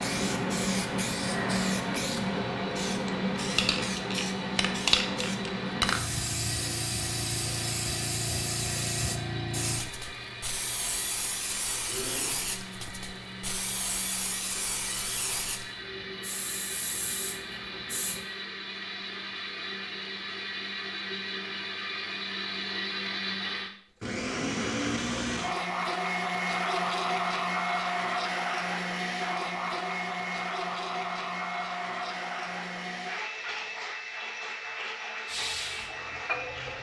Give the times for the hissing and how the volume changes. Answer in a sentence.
You can hear the hissing from 0.0 to 18.2 s, getting quieter; and briefly from 35.2 to 36.7 s.